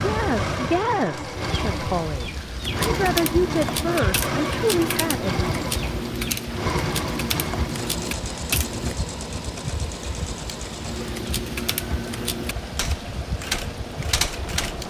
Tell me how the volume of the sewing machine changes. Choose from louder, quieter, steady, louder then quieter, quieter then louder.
quieter.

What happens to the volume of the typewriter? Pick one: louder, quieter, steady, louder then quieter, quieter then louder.
steady.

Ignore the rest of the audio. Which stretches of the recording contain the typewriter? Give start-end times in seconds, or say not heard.
2.6-8.9, 10.8-14.8.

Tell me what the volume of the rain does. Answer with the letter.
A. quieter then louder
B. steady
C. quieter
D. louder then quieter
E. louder
B.